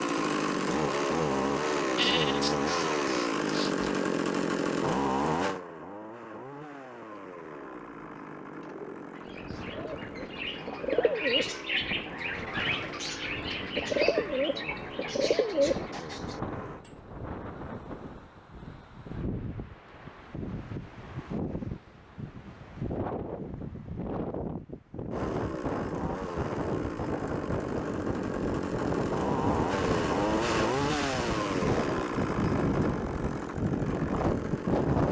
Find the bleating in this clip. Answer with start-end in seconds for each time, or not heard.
1.9-3.9.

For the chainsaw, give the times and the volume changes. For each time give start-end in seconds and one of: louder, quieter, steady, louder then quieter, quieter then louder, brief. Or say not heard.
0.0-16.9 quieter
25.1-35.0 louder then quieter.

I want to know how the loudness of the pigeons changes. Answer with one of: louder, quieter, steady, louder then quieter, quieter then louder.
louder.